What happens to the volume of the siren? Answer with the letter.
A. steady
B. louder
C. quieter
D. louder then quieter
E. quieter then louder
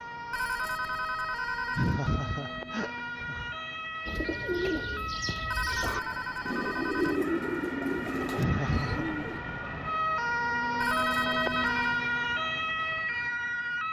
B.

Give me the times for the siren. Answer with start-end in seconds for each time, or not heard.
0.0-13.8.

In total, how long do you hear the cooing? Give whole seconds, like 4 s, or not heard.
5 s.